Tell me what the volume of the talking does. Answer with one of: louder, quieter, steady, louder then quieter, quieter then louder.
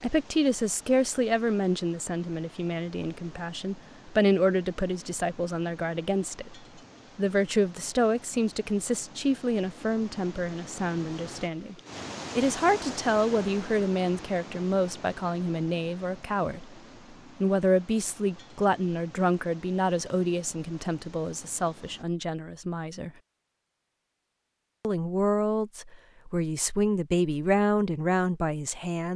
steady.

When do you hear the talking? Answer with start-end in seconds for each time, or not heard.
0.0-6.5, 7.2-11.8, 12.3-16.8, 17.4-23.1, 24.8-29.1.